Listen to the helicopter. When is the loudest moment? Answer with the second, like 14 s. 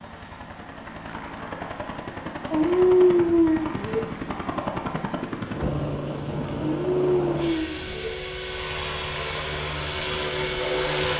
11 s.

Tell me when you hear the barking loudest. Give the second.
3 s.